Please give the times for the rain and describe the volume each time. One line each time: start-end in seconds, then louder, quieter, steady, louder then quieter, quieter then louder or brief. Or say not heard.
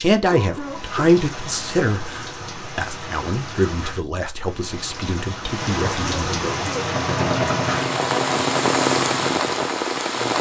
0.0-10.3 louder.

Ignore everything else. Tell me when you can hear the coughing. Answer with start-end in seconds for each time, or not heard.
0.3-1.1, 5.8-7.0.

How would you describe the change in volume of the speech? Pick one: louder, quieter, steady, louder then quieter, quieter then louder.
quieter.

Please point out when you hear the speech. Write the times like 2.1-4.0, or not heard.
0.0-6.5.